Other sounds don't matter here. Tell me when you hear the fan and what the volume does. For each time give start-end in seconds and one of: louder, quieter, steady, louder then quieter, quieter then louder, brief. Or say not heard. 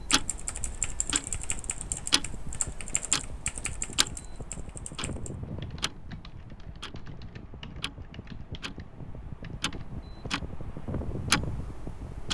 0.1-12.3 louder.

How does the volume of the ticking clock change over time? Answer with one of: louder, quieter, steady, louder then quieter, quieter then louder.
quieter then louder.